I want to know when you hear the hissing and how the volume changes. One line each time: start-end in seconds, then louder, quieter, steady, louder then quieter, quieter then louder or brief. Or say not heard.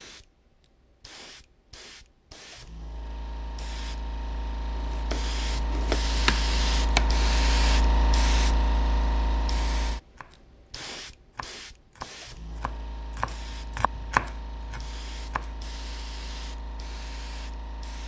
0.0-18.0 louder then quieter.